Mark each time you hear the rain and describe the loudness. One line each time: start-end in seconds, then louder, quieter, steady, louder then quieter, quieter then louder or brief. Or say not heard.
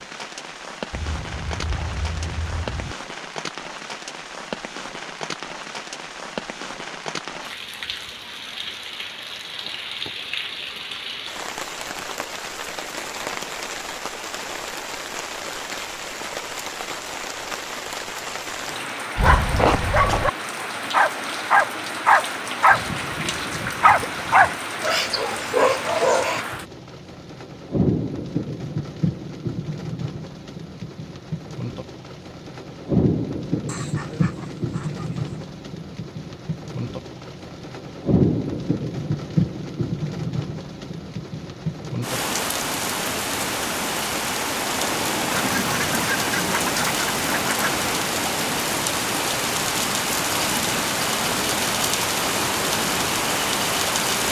0.0-54.2 louder.